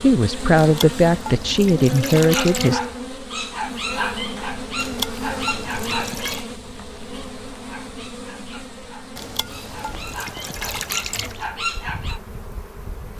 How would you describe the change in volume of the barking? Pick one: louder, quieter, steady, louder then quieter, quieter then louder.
quieter then louder.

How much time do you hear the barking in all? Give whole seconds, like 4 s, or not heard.
10 s.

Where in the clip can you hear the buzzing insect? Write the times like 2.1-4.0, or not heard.
0.0-13.1.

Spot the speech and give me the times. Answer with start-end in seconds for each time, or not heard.
0.0-2.8.